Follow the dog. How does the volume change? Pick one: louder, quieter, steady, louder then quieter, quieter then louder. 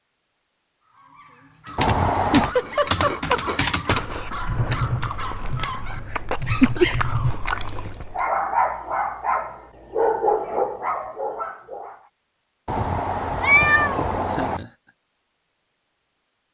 louder.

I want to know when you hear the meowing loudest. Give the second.
14 s.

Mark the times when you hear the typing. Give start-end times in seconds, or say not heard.
1.6-7.3.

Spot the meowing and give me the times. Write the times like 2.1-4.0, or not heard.
1.8-2.5, 12.7-14.7.